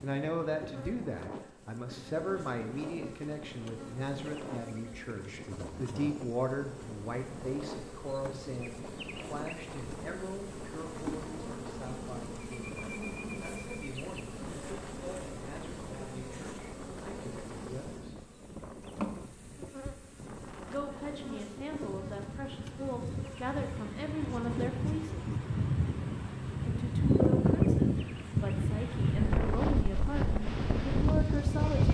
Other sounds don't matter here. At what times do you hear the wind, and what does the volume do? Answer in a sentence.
The wind can be heard from 0.0 to 31.8 s, getting louder.